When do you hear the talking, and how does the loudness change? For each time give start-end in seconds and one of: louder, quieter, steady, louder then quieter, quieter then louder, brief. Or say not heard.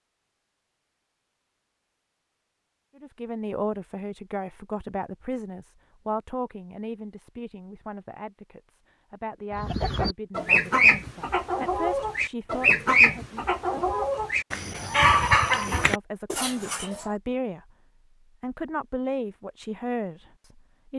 3.0-13.4 quieter then louder
15.4-17.7 brief
18.4-20.9 brief.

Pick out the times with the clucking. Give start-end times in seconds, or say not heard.
9.5-17.1.